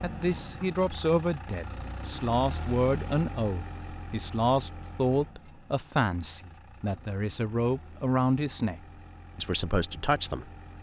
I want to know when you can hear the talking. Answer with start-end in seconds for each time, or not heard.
0.0-10.5.